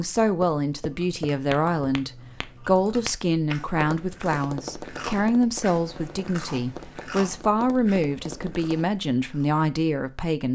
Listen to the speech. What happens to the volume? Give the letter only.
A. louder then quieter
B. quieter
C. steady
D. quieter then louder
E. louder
C.